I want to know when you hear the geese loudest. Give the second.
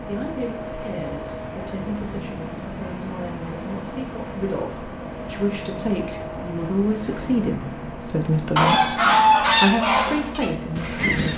9 s.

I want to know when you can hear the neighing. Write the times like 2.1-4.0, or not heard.
not heard.